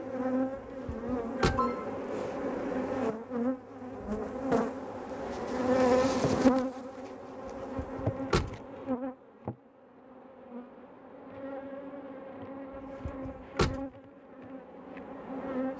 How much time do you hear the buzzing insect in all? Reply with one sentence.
The buzzing insect can be heard for 16 seconds in total.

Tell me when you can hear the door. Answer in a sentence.
The door can be heard from 0.8 to 1.7 s, from 7.8 to 8.6 s and from 13.1 to 13.8 s.